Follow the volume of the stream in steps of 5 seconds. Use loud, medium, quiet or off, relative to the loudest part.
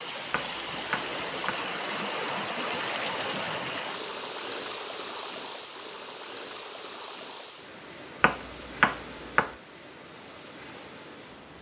loud, medium, quiet.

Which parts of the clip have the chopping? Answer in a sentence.
You can hear the chopping from 0.3 to 1.6 s and from 8.2 to 9.5 s.